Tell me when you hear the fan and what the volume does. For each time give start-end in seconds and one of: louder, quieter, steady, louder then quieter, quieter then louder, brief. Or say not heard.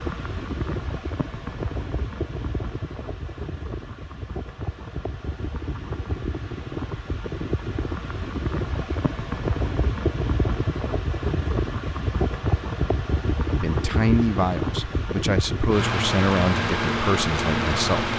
0.0-18.1 louder.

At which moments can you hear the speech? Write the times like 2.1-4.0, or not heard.
13.5-18.1.